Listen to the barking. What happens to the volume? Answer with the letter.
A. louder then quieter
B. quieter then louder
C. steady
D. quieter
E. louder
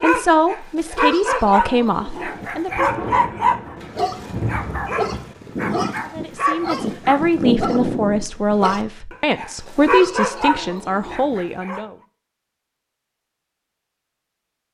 C.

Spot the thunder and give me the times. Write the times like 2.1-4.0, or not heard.
2.7-5.3.